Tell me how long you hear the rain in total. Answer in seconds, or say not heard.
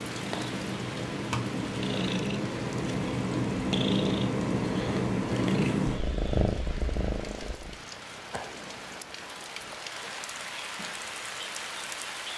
12 s.